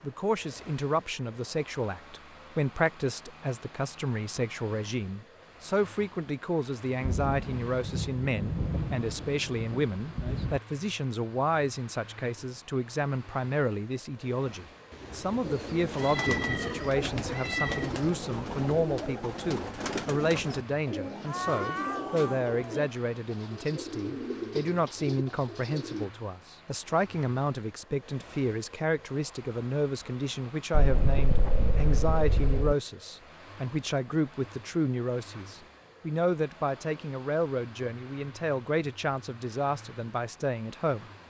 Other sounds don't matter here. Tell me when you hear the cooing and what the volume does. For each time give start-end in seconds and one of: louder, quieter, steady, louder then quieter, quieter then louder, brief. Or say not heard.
15.4-26.1 steady.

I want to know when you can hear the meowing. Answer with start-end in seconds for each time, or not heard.
15.9-17.9, 21.2-22.9.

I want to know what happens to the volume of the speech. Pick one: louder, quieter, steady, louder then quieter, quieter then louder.
steady.